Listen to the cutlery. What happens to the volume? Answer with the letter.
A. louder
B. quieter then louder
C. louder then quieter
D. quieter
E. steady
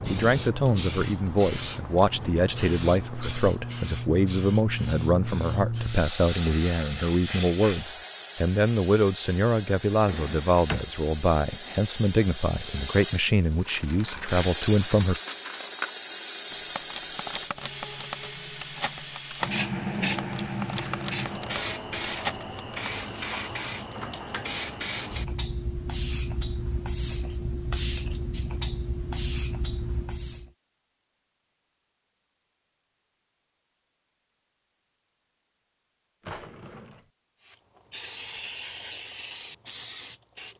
E.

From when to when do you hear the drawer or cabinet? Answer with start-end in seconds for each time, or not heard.
10.1-10.8, 36.2-37.0.